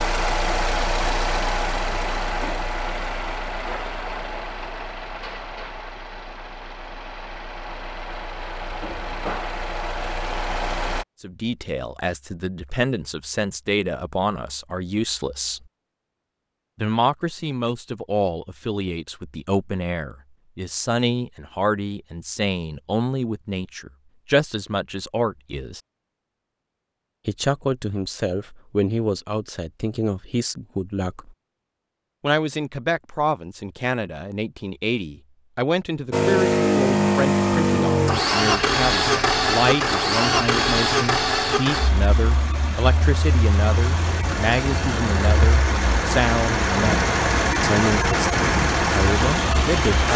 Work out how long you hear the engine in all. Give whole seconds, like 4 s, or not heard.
25 s.